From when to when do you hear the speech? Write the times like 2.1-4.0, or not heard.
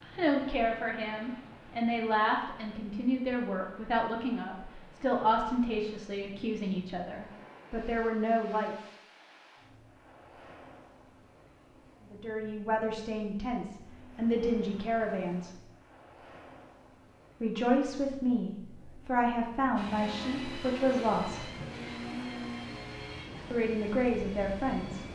0.0-8.8, 12.1-15.5, 17.4-21.5, 23.5-25.0.